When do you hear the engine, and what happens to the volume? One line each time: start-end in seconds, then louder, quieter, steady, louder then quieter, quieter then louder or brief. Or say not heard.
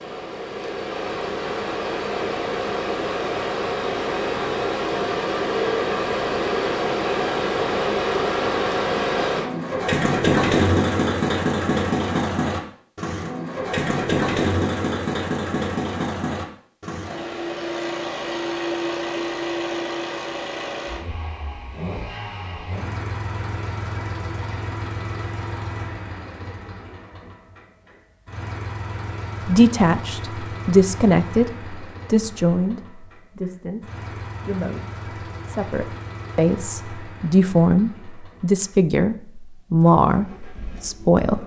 0.0-41.4 quieter.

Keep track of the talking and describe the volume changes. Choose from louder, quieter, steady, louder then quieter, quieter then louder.
quieter then louder.